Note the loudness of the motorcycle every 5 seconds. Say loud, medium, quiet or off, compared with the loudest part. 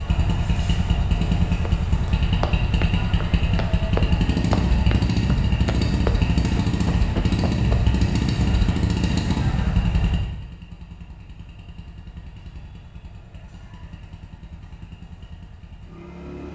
loud, loud, quiet, quiet.